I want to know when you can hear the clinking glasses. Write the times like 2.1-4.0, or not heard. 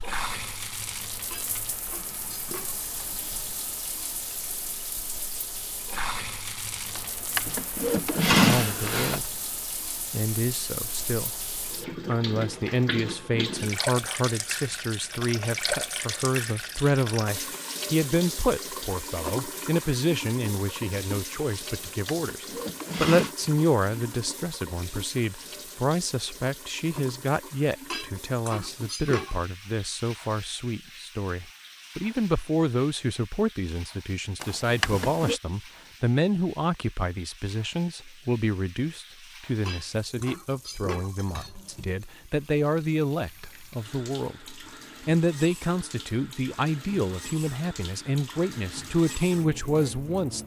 1.3-2.9, 27.9-29.4, 39.6-41.5.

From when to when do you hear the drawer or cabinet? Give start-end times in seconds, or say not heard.
7.0-9.2, 21.6-23.4, 34.4-35.4.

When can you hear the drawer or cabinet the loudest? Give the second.
8 s.